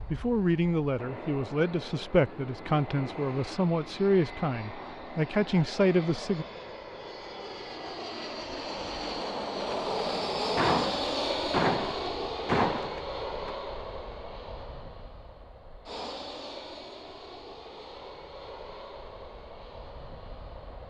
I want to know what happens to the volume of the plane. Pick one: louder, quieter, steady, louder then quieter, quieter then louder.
louder then quieter.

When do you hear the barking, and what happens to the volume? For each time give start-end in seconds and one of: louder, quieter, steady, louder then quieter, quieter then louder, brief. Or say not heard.
not heard.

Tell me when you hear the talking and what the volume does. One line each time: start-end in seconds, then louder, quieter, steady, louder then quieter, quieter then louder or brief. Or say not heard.
0.1-6.5 steady.